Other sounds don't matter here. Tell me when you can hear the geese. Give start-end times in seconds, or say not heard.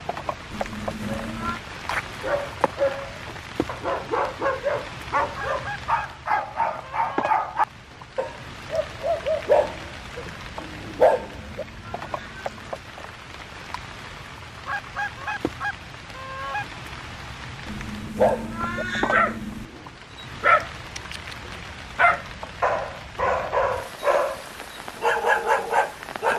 5.3-7.3, 14.7-16.6.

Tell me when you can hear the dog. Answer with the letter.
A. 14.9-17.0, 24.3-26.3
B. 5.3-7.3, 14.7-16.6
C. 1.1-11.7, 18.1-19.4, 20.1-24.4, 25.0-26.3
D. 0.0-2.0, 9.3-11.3
C.